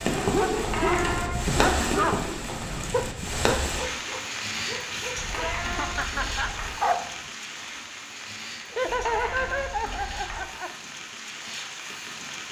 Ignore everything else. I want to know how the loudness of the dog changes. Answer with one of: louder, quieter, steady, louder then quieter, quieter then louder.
quieter.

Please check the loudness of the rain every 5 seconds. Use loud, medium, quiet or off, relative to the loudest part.
loud, medium, medium.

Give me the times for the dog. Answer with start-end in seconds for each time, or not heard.
0.1-7.2.